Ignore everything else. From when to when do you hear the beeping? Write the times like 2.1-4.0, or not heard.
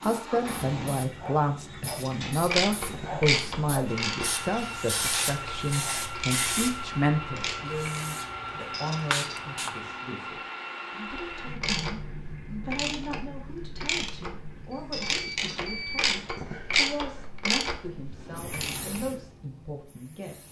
14.7-16.4.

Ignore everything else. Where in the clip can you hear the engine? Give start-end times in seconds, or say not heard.
0.0-16.4.